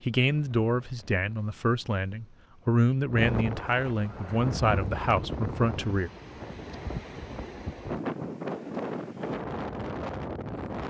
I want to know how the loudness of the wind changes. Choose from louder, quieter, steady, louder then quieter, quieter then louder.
louder.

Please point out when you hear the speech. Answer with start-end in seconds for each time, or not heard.
0.0-6.1.